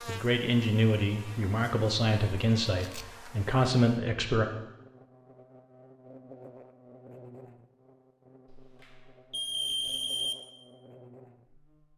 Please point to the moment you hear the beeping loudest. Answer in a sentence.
The volume of the beeping peaks at 10 seconds.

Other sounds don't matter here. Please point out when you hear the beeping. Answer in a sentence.
You can hear the beeping from 8.5 to 10.3 s.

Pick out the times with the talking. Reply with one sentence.
The talking can be heard from 0.1 to 4.5 s.